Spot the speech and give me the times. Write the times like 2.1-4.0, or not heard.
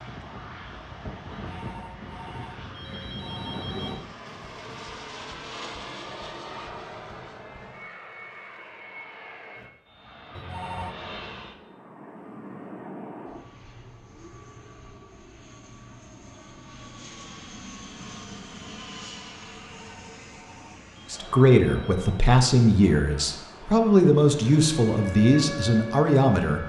21.1-26.6.